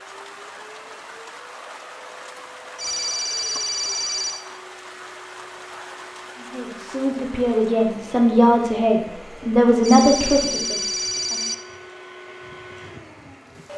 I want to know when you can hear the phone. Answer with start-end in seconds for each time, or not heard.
2.8-4.5, 9.8-11.6.